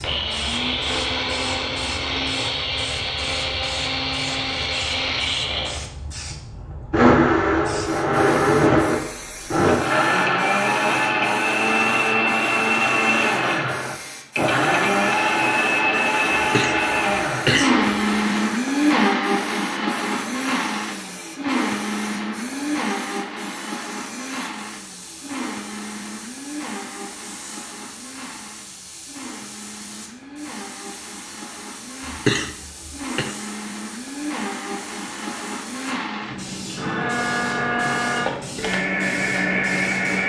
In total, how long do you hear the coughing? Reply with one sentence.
You can hear the coughing for 3 seconds altogether.